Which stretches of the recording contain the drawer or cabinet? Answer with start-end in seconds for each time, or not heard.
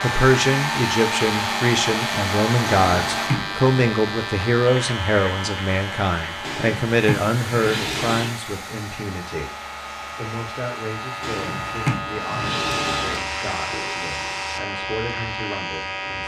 2.8-3.7, 6.4-8.3, 11.2-13.2.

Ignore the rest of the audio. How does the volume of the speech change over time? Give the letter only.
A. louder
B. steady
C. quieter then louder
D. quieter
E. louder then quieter
D.